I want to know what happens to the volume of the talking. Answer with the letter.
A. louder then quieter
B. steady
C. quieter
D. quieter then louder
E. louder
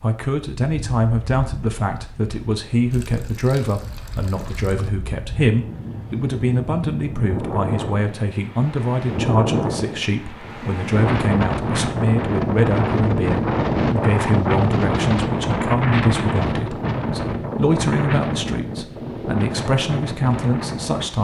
B.